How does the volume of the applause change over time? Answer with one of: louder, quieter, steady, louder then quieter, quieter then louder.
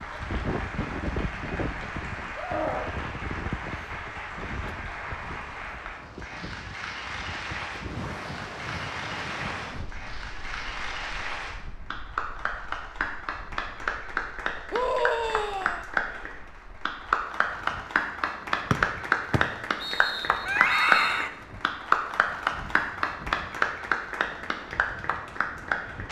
louder.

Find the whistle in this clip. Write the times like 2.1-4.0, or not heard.
18.7-21.2.